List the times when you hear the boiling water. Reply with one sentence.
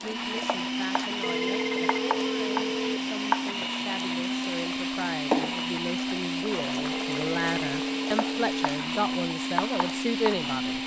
The boiling water can be heard from 0.0 to 10.8 s.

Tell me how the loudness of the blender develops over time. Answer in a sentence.
The loudness of the blender stays about the same.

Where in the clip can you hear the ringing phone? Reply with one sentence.
The ringing phone can be heard from 1.2 to 3.1 s and from 6.9 to 8.5 s.